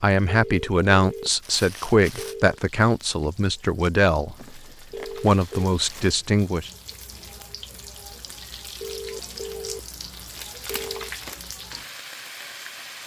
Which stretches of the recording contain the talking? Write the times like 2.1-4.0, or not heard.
0.0-4.5, 5.2-6.7.